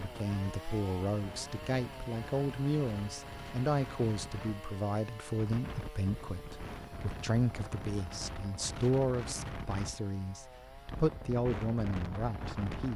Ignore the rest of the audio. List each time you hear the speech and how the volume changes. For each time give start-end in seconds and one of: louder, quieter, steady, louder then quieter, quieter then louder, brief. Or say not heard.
0.0-12.9 steady.